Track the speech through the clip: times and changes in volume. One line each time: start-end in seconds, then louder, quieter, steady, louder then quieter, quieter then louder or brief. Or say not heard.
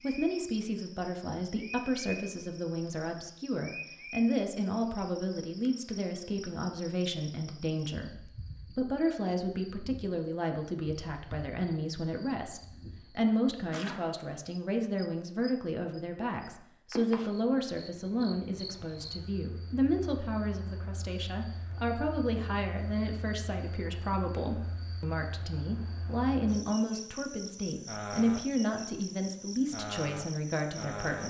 0.0-31.2 steady.